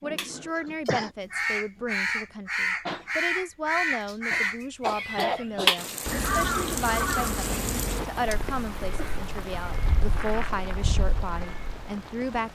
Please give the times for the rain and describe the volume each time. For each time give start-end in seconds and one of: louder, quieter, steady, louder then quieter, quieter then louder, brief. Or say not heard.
5.8-12.5 quieter.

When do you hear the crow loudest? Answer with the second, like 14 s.
6 s.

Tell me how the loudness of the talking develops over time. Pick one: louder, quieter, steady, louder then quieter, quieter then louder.
steady.